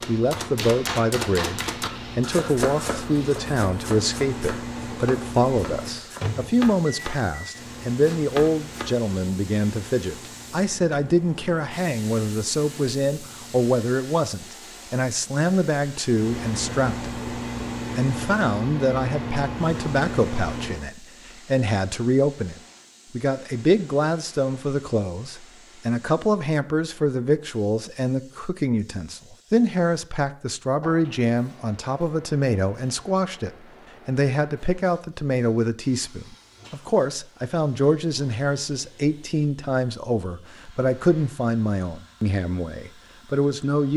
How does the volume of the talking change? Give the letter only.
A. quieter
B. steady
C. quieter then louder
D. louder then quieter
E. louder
B.